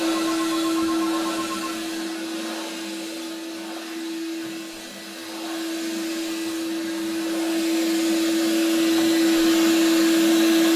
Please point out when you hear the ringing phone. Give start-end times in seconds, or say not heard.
0.1-1.9.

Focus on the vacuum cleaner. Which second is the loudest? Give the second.
10 s.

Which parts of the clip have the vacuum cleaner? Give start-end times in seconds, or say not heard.
0.0-10.7.